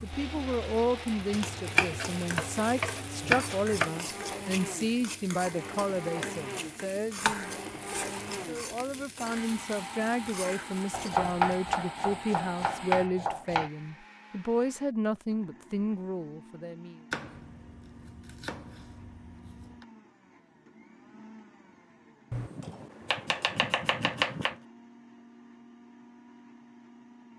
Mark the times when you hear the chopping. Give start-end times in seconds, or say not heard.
1.3-3.9, 7.2-8.3, 10.9-13.7, 17.1-19.9, 22.3-24.6.